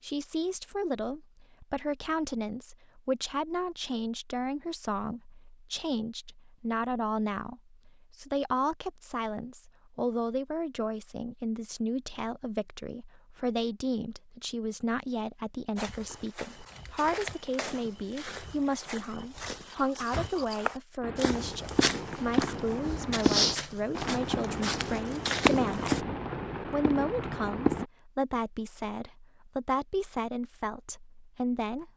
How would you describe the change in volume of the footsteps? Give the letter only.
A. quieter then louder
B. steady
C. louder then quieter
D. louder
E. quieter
D.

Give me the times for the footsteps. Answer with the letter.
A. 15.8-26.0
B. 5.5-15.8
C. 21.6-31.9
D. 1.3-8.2
A.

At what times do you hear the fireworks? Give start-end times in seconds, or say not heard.
21.0-27.9.